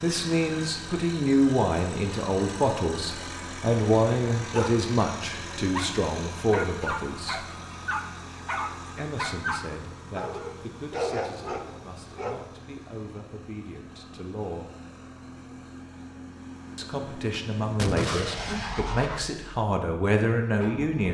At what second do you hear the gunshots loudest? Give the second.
18 s.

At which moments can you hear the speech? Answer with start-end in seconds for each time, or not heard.
0.0-7.5, 8.9-14.7, 16.8-21.0.